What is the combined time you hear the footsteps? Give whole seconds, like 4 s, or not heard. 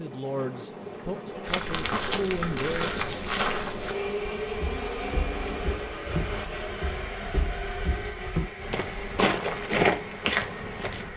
10 s.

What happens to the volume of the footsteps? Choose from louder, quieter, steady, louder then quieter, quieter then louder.
quieter then louder.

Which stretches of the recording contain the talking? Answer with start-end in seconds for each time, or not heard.
0.0-3.0.